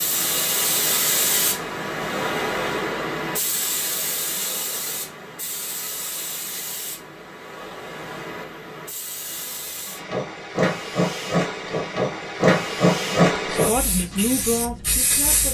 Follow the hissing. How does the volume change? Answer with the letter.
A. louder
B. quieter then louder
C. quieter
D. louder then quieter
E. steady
B.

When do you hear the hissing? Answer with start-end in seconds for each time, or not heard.
0.0-15.4.